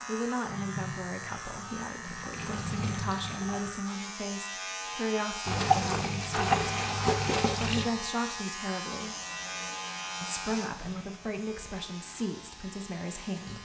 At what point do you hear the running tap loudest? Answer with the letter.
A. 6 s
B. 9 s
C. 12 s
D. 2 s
A.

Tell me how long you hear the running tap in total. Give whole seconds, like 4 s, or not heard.
11 s.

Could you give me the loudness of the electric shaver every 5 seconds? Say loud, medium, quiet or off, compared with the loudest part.
loud, loud, medium.